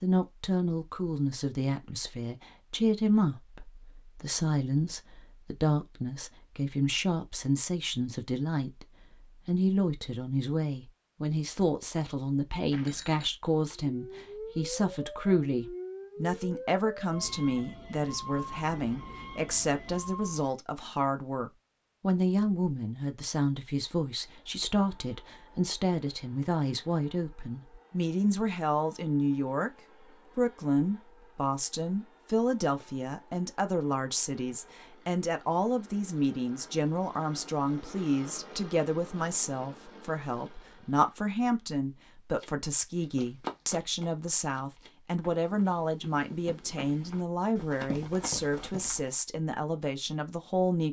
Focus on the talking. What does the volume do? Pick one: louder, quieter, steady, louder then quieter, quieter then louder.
steady.